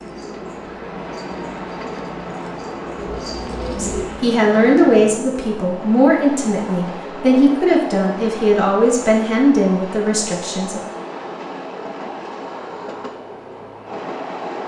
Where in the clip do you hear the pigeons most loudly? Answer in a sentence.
The volume of the pigeons peaks at 4 seconds.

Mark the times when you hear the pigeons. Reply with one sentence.
The pigeons can be heard from 0.0 to 4.0 s.